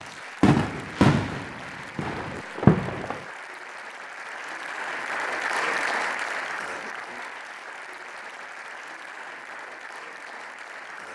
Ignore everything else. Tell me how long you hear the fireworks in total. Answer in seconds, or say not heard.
3 s.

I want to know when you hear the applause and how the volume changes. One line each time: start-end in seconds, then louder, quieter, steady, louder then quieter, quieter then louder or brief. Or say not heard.
0.0-11.1 louder then quieter.